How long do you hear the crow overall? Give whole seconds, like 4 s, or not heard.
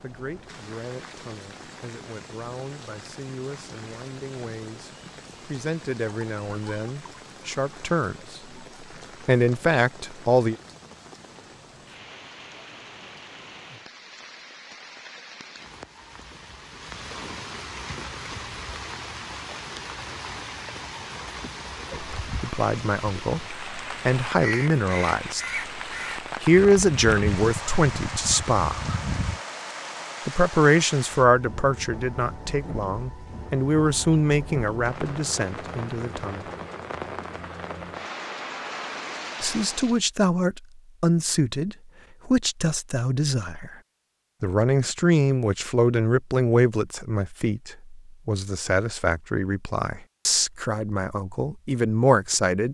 5 s.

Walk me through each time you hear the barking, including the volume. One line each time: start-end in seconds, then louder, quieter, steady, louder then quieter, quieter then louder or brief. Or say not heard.
not heard.